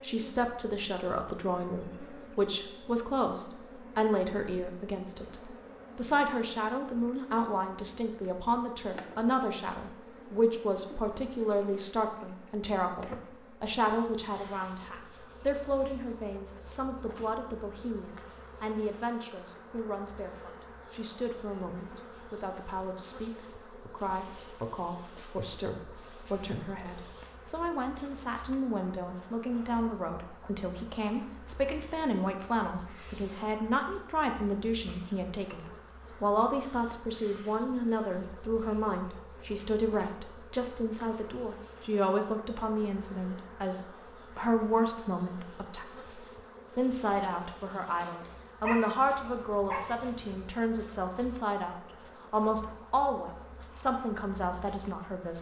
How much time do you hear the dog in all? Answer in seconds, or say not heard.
2 s.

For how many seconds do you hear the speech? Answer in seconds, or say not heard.
55 s.